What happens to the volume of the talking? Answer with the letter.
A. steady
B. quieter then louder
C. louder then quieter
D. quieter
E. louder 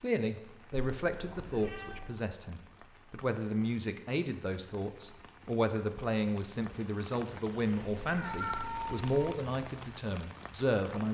A.